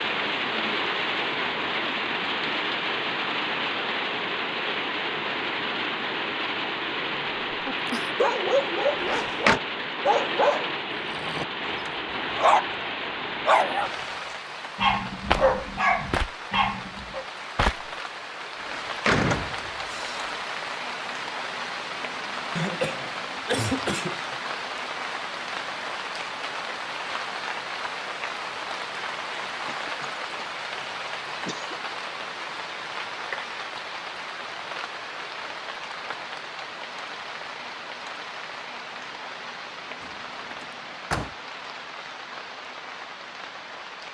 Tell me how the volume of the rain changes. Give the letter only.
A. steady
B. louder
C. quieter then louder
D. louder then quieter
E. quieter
E.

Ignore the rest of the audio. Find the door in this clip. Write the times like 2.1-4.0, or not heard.
9.0-9.6, 18.6-20.3, 40.0-41.4.